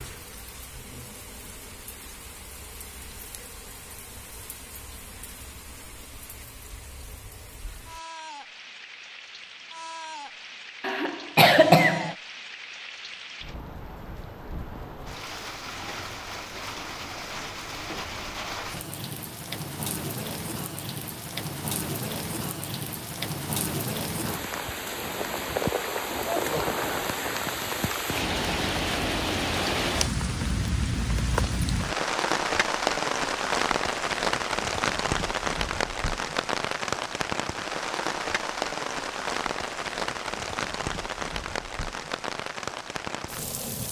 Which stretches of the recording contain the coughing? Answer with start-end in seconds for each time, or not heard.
10.8-12.2.